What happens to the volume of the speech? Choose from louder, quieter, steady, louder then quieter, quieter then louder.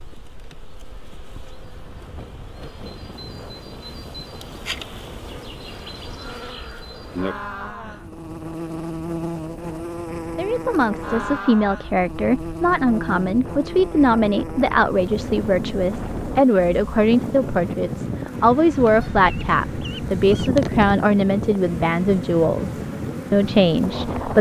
steady.